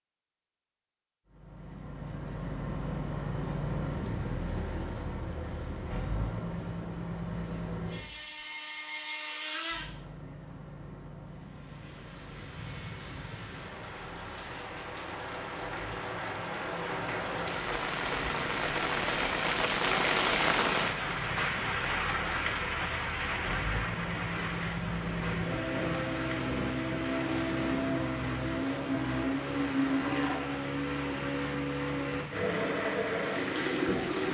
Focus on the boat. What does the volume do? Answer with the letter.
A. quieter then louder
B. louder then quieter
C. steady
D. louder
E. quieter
A.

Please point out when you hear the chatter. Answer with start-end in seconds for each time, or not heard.
not heard.